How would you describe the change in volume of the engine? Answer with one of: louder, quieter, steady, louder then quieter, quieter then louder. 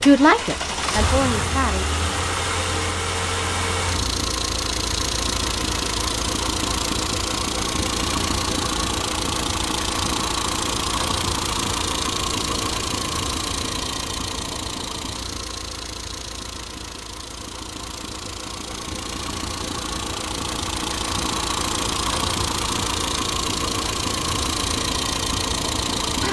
quieter then louder.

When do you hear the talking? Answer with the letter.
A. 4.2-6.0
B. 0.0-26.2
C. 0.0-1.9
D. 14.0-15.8
C.